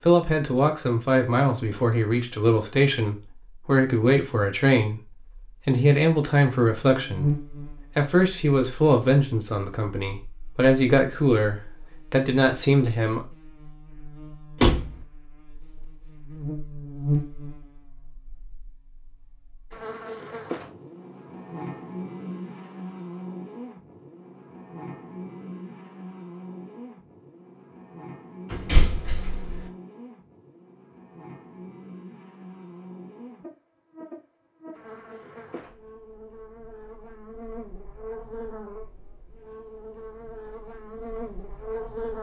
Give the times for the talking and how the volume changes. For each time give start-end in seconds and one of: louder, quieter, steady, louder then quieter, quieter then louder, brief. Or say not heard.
0.0-13.2 steady.